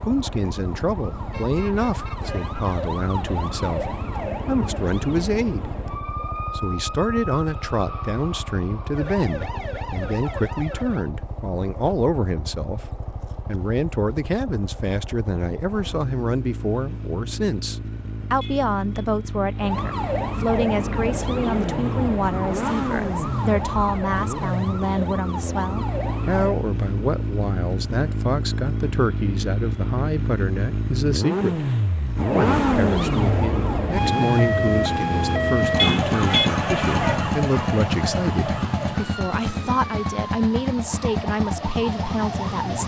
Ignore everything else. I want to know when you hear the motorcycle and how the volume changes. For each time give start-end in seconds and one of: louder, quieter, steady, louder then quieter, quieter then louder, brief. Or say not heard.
0.0-42.8 louder.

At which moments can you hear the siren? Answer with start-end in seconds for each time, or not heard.
0.0-11.1, 19.6-26.6, 32.1-42.8.